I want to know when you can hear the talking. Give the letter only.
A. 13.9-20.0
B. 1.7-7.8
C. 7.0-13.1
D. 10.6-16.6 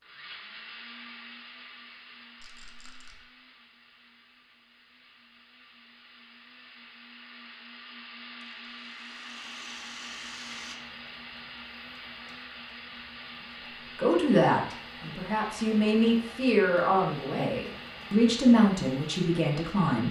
A.